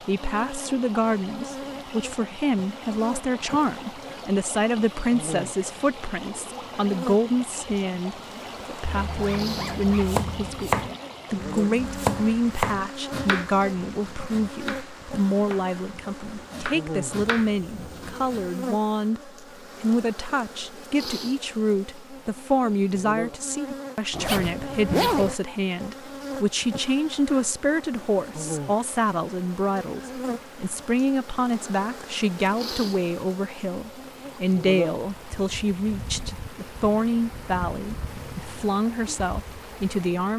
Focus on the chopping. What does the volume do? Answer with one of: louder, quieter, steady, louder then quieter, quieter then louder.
quieter then louder.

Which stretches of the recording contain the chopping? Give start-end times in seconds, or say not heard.
9.5-18.4.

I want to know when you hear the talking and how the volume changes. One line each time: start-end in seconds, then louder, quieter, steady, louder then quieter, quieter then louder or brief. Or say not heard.
0.1-40.3 steady.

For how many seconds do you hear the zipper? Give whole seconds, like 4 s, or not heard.
3 s.